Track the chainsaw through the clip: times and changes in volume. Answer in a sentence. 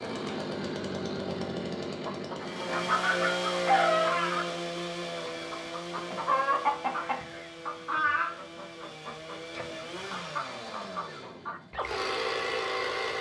You can hear the chainsaw from 0.0 to 13.1 s, getting quieter then louder.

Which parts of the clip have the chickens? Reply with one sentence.
You can hear the chickens from 2.0 to 12.1 s.